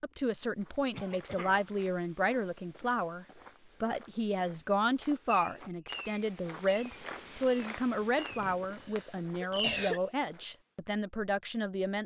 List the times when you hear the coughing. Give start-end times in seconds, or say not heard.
0.9-1.7, 8.0-10.0.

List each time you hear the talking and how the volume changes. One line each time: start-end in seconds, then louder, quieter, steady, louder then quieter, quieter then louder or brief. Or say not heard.
0.0-12.0 steady.